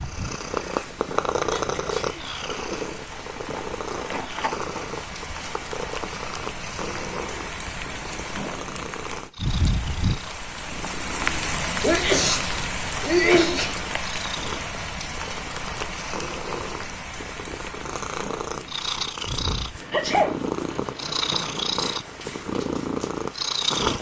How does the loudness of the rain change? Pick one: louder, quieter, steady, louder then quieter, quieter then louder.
louder then quieter.